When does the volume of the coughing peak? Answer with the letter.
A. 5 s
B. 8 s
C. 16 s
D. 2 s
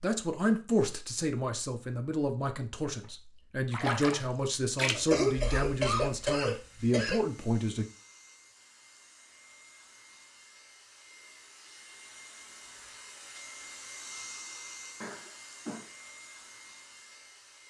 A.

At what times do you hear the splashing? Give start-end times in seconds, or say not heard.
3.0-5.0.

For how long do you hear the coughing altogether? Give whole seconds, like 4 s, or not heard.
3 s.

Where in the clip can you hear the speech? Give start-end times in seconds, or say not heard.
0.0-7.8.